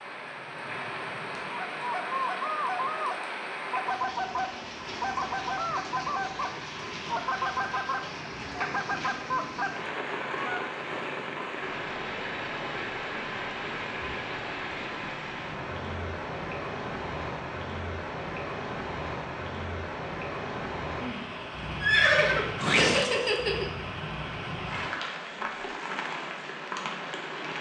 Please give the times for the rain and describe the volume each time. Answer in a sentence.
The rain can be heard from 0.0 to 27.5 s, at a steady volume.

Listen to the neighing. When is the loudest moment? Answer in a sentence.
The loudest moment of the neighing is at 22 seconds.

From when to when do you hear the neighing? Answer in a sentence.
The neighing can be heard from 21.8 to 23.7 s.